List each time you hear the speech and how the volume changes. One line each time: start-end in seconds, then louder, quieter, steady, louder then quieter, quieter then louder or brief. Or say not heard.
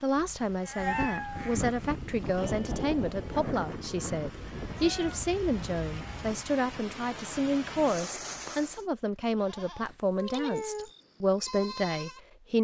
0.0-12.5 steady.